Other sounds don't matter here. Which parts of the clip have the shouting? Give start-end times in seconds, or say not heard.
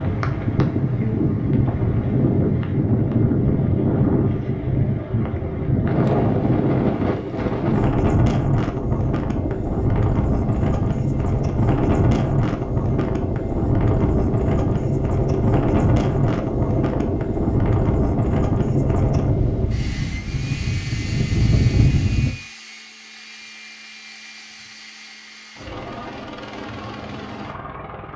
not heard.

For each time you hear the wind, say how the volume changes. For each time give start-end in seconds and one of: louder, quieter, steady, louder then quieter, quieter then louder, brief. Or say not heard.
0.0-22.3 steady.